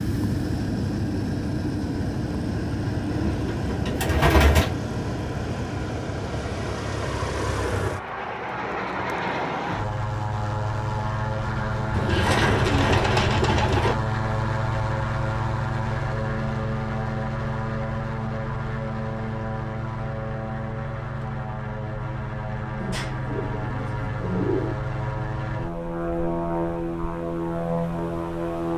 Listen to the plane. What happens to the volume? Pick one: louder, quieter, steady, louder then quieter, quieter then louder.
steady.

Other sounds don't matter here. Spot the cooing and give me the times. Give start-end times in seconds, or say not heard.
3.1-4.7, 11.9-13.9, 22.8-24.8.